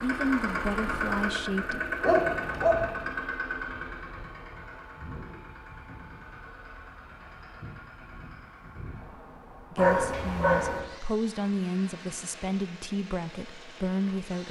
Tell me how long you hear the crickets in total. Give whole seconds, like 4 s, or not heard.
not heard.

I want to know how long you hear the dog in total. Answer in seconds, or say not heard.
2 s.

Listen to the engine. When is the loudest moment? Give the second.
1 s.